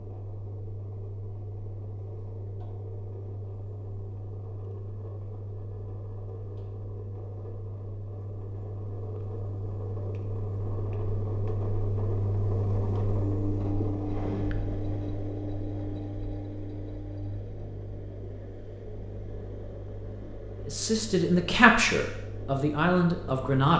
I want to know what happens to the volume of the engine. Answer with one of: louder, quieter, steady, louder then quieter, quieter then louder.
louder then quieter.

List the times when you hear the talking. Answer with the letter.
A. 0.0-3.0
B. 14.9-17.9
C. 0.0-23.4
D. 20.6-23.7
D.